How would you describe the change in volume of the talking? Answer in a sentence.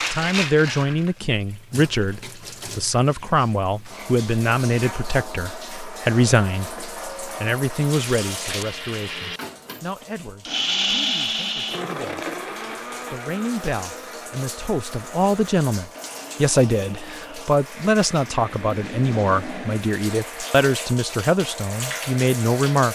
The volume of the talking goes down, then up.